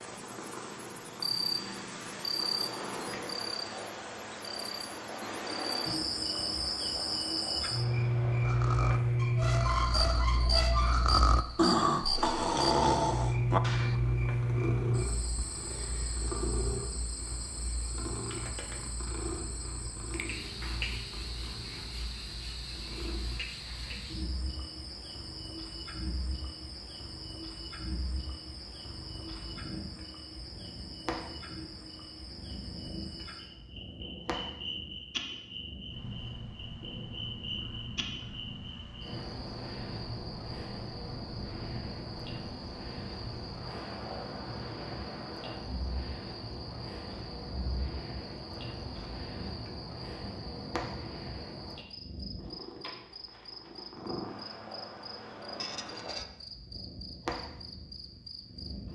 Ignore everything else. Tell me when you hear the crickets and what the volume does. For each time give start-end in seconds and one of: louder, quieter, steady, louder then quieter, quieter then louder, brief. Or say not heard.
0.0-58.9 quieter.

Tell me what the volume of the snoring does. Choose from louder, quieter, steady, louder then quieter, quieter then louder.
louder.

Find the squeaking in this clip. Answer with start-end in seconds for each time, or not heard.
9.2-11.0, 55.5-56.2.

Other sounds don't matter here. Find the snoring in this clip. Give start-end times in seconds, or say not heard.
8.4-13.9.